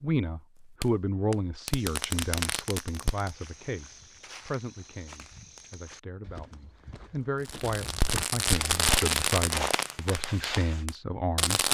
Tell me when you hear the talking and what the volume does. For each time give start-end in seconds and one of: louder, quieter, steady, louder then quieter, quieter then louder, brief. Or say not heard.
0.0-11.6 quieter then louder.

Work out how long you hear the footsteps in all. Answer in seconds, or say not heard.
9 s.